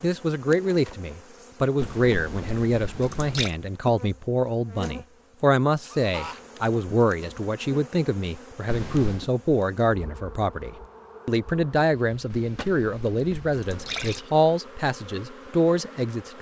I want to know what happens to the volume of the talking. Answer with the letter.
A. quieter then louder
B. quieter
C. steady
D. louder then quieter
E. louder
C.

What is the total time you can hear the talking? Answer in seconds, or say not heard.
16 s.